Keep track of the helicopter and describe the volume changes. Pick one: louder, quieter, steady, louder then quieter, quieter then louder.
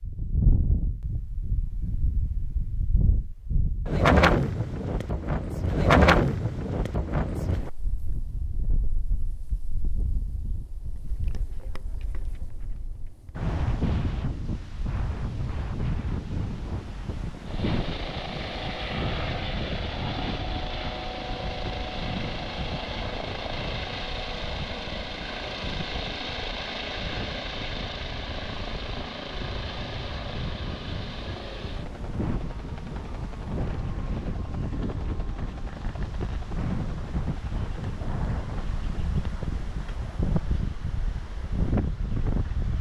quieter.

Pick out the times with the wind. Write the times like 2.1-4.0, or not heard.
0.0-42.7.